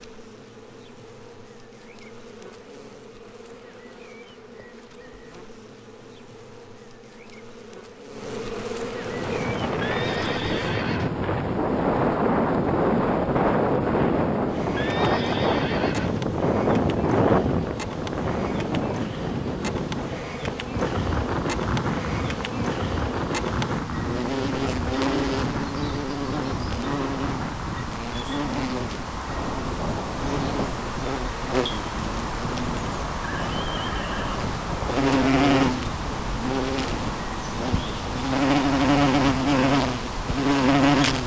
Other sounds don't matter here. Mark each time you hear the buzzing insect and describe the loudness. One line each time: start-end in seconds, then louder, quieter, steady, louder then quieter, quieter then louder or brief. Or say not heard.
0.0-41.2 louder.